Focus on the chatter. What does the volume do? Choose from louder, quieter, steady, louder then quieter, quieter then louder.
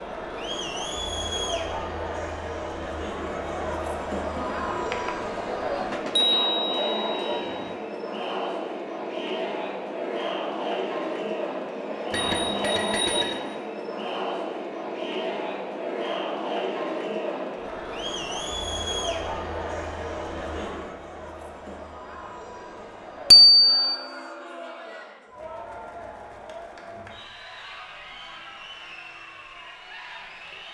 quieter.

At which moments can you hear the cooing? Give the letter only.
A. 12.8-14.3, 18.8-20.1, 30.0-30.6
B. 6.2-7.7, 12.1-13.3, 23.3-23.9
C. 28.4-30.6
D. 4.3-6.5
D.